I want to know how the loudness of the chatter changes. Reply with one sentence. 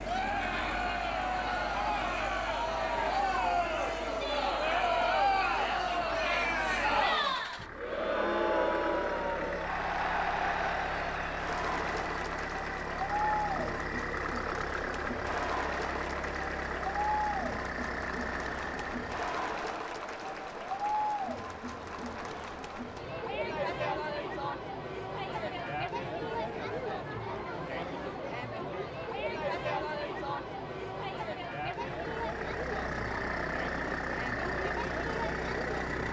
The volume of the chatter goes down.